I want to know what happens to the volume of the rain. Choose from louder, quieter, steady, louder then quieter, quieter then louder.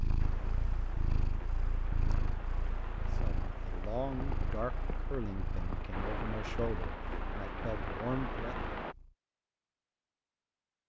louder.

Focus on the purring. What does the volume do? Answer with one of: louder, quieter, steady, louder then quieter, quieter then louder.
quieter.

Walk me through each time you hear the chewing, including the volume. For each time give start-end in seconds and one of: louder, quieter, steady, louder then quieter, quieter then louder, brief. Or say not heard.
not heard.